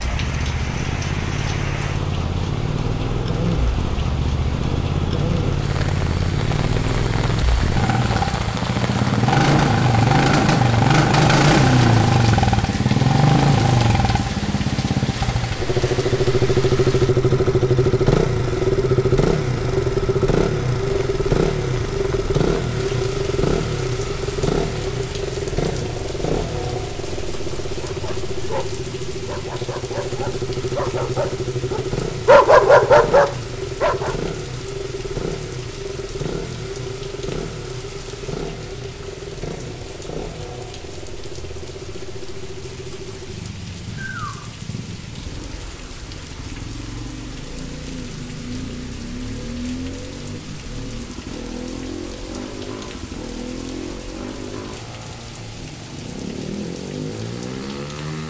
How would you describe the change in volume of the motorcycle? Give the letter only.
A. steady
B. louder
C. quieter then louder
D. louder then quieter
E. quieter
E.